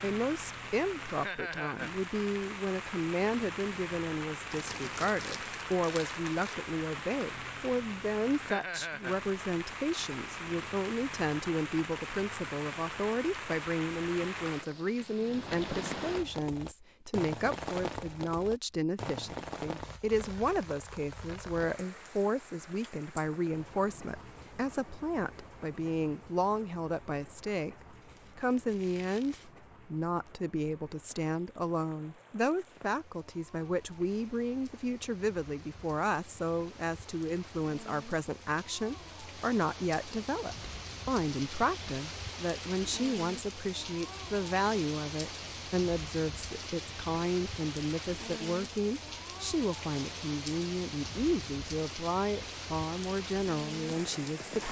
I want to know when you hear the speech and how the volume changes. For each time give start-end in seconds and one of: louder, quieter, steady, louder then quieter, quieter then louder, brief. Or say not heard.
0.0-54.6 steady.